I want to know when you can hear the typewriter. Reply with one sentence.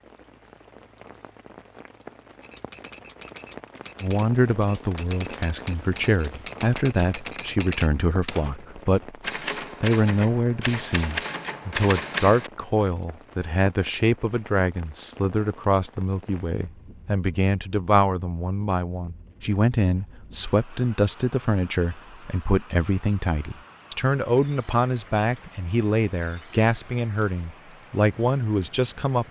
The typewriter can be heard from 2.4 to 12.5 s.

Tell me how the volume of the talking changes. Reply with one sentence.
The volume of the talking stays about the same.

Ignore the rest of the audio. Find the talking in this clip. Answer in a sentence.
The talking can be heard from 4.0 to 9.2 s and from 9.8 to 29.2 s.